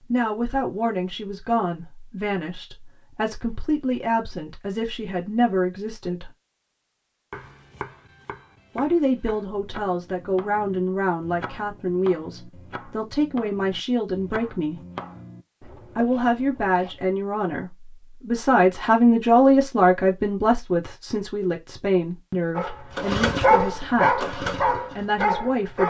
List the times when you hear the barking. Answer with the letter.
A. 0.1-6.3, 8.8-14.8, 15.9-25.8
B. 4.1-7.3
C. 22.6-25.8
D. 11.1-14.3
C.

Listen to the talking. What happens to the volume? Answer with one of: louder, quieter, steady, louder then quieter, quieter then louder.
louder then quieter.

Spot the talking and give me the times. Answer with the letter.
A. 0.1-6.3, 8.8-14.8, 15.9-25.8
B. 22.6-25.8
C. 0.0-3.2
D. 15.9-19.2
A.